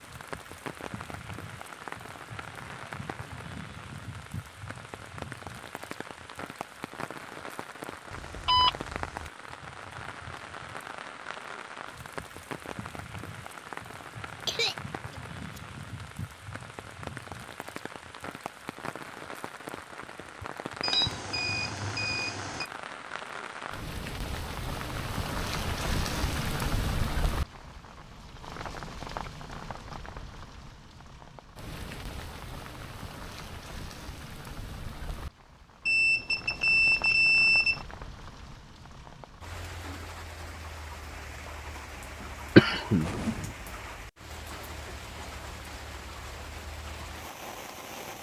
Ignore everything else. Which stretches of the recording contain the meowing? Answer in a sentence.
You can't hear the meowing here.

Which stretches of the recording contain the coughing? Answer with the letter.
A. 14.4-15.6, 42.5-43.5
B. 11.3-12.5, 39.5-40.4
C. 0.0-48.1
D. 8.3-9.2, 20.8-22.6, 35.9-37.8
A.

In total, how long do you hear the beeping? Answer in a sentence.
The beeping can be heard for 5 seconds in total.